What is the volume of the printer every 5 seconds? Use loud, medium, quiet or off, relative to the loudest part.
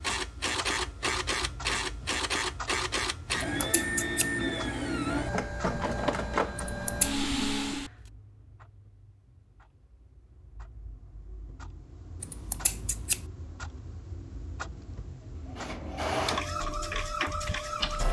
loud, loud, off, loud.